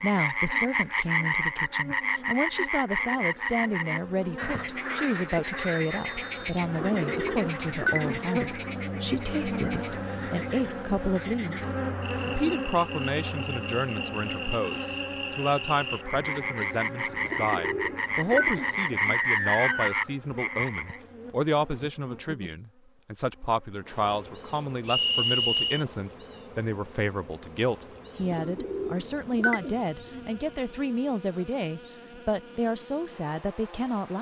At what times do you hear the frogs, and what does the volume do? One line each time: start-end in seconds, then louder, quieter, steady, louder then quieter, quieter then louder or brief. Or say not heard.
0.0-21.0 quieter then louder.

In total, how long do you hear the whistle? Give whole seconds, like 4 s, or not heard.
3 s.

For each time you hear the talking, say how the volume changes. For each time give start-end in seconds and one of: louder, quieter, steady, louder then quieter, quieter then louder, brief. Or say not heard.
0.0-34.1 steady.